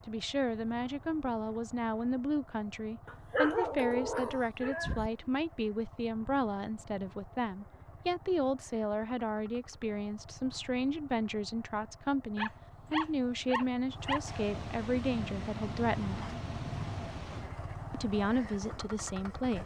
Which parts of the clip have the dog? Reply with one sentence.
You can hear the dog from 3.3 to 5.1 s and from 12.3 to 14.2 s.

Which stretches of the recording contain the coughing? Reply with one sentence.
The coughing can't be heard in this clip.